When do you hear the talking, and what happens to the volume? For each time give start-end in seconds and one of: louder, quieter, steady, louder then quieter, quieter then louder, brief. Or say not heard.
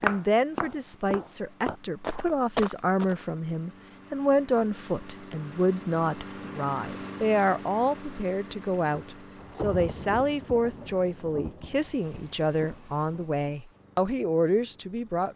0.0-15.3 steady.